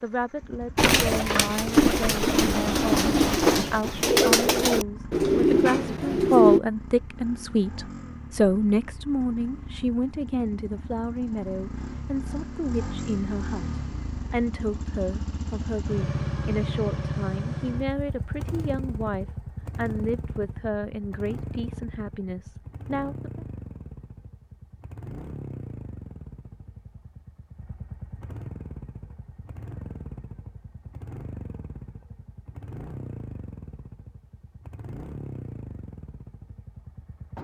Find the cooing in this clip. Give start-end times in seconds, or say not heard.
0.8-6.6.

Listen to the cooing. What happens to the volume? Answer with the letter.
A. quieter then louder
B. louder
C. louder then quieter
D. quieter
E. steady
E.